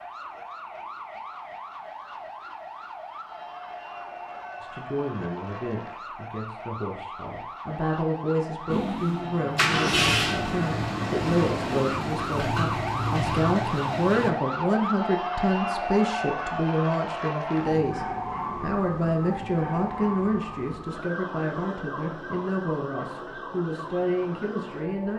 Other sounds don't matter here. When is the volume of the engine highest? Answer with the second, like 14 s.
10 s.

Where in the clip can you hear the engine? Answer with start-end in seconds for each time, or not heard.
8.7-14.3.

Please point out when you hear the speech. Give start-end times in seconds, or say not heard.
4.6-25.1.